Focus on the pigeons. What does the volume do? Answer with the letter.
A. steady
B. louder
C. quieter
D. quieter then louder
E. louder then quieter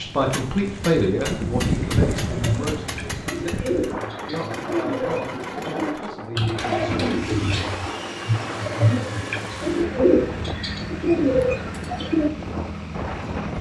B.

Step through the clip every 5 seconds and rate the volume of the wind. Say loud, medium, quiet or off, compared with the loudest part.
loud, medium, medium.